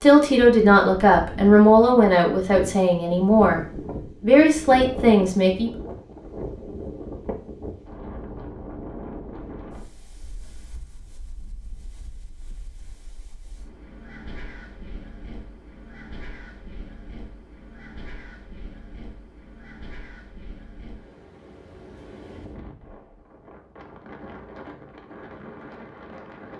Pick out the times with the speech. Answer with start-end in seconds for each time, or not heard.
0.0-5.7.